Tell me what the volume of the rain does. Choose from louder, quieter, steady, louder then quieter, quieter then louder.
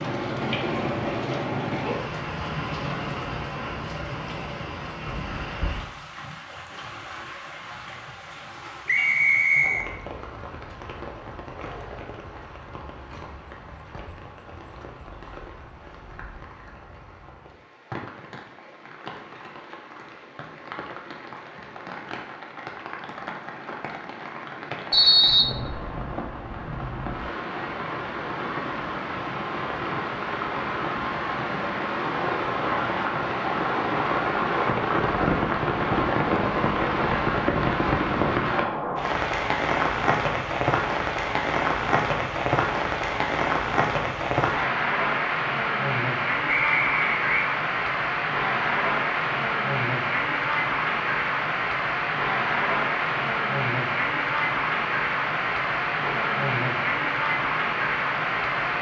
quieter then louder.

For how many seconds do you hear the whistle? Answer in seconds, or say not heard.
3 s.